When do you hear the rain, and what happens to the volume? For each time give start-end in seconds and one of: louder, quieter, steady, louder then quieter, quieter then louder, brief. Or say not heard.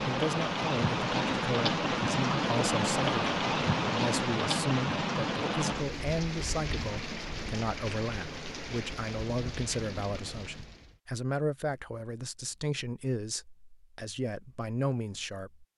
0.0-11.0 quieter.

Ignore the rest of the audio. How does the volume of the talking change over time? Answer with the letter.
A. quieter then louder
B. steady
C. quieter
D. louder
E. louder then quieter
B.